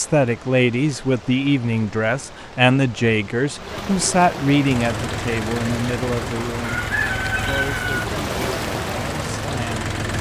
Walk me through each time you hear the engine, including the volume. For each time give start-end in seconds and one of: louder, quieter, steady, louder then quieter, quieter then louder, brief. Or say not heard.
4.6-10.1 steady.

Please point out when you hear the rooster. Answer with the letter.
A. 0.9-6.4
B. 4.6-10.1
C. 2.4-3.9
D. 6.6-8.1
D.